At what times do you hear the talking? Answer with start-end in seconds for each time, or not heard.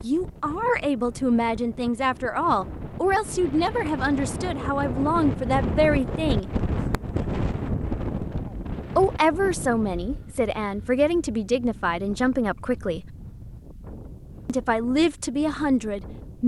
0.0-6.5, 8.9-13.1, 14.4-16.4.